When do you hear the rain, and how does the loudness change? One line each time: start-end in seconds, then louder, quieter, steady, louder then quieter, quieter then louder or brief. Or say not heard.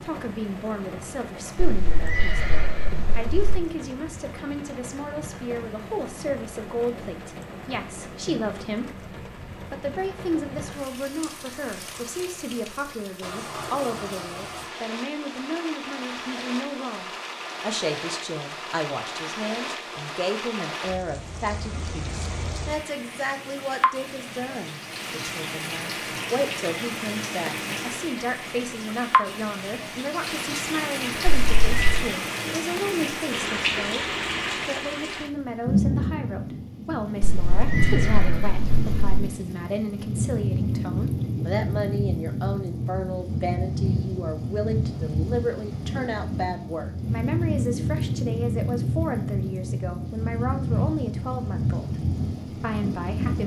0.0-53.4 louder.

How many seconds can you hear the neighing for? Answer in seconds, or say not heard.
5 s.